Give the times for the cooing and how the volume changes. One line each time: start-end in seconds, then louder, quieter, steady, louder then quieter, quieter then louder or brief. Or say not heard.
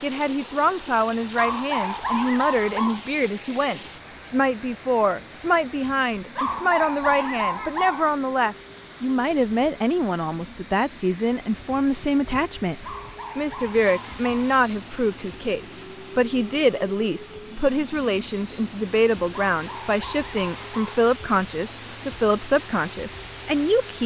not heard.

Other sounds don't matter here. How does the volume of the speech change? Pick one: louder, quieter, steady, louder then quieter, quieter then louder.
steady.